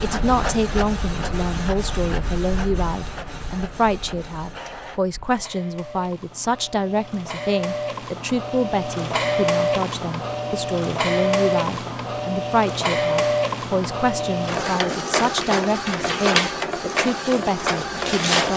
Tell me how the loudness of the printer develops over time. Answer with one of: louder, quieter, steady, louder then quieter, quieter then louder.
quieter then louder.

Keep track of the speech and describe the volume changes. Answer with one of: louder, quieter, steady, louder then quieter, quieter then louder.
steady.